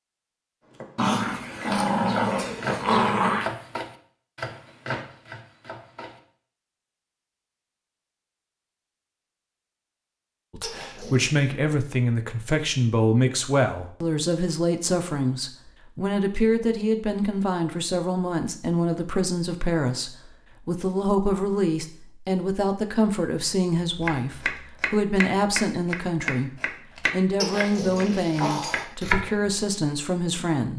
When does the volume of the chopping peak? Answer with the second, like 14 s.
29 s.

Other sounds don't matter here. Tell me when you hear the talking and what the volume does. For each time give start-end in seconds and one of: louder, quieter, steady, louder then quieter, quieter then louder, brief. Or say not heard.
10.5-30.7 steady.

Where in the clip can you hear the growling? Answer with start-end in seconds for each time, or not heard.
0.9-3.5, 10.6-11.3, 27.4-28.9.